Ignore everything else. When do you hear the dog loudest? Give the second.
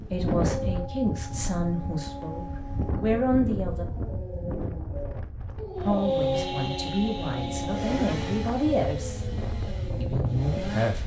6 s.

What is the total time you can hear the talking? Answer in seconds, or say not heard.
8 s.